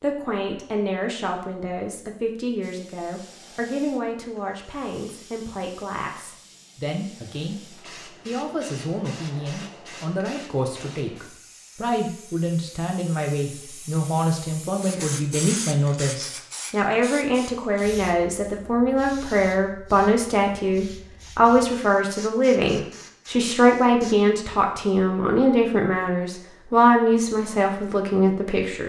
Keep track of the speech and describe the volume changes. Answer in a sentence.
The volume of the speech goes up.